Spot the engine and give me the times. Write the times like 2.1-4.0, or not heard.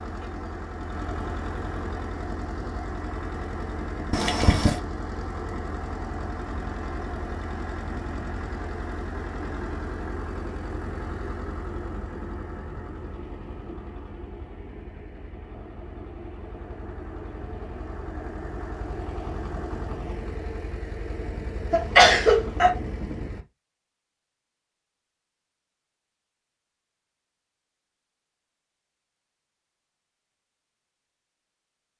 0.0-23.4.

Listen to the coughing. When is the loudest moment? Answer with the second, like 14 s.
22 s.